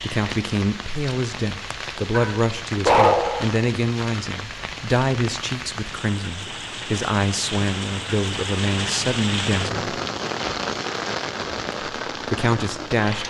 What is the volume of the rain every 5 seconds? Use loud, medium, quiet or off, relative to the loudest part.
medium, loud, loud.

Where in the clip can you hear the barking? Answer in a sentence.
The barking can be heard from 2.1 to 3.5 s.